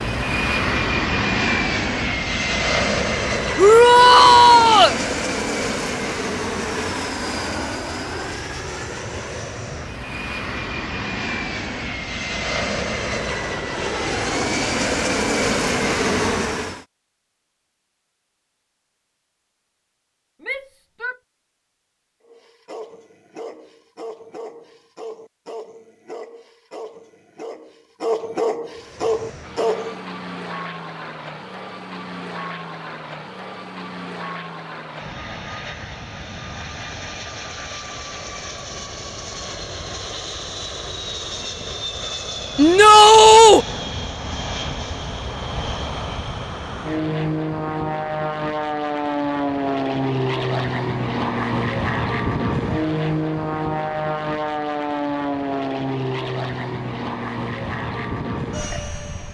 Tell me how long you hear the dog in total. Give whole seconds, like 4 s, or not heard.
8 s.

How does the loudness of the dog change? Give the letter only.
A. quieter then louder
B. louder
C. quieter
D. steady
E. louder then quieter
B.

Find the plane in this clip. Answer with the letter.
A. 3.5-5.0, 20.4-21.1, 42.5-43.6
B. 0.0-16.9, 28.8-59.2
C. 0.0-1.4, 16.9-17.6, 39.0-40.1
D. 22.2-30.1
B.